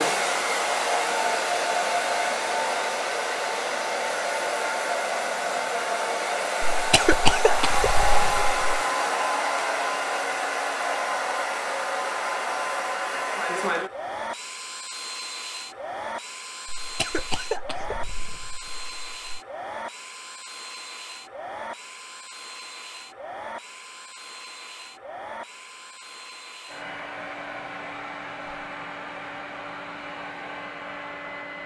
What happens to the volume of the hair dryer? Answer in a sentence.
The volume of the hair dryer goes down.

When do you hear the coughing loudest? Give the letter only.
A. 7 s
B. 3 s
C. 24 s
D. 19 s
A.